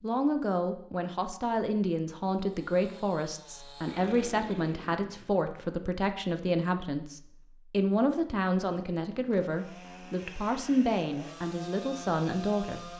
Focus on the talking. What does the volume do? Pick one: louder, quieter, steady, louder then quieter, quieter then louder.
steady.